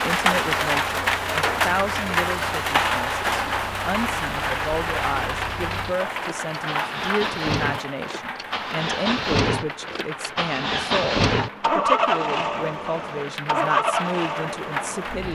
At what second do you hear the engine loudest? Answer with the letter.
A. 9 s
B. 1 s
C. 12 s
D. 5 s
C.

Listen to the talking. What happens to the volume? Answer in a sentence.
The volume of the talking stays about the same.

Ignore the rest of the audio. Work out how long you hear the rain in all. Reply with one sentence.
The rain can be heard for 15 seconds in total.